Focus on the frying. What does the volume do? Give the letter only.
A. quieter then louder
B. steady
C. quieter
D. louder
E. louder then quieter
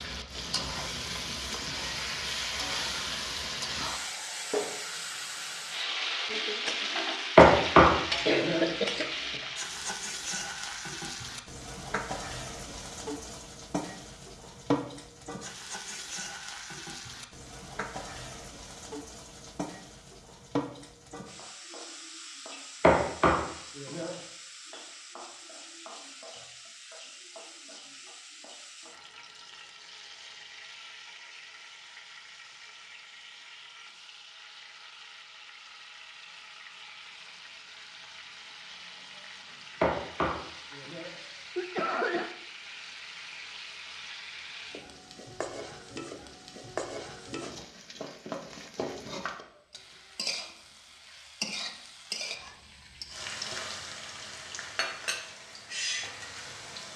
A.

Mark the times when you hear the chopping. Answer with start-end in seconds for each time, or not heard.
7.3-8.7, 22.8-24.1, 39.8-41.0.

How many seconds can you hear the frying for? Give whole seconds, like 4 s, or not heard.
57 s.